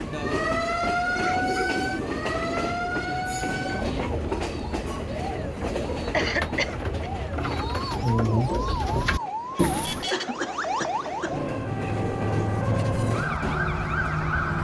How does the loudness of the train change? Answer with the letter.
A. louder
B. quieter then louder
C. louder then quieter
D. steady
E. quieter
B.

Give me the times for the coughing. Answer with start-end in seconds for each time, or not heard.
1.1-1.6, 6.1-6.9, 10.1-11.4.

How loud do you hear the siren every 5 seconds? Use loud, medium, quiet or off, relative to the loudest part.
loud, medium, loud.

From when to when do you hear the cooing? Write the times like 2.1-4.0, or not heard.
0.1-10.1.